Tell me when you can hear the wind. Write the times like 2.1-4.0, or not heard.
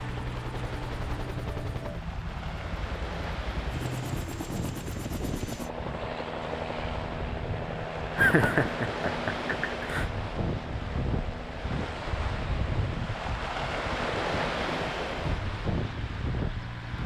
0.0-17.0.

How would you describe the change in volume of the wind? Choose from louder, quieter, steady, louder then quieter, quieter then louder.
louder.